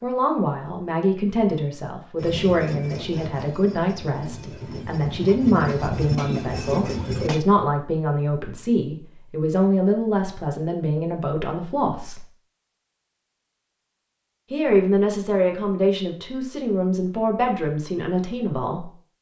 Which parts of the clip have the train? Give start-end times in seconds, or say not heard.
2.1-7.5.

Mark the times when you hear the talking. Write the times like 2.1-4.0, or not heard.
0.0-12.2, 14.5-18.9.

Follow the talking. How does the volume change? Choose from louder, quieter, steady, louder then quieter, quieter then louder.
steady.